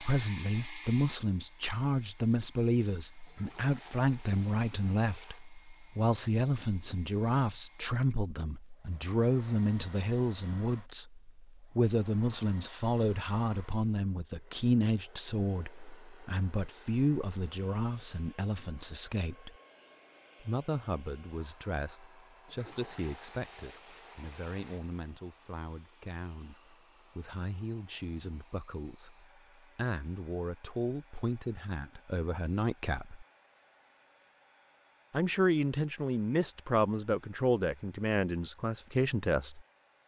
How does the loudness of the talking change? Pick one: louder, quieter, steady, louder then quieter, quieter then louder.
quieter then louder.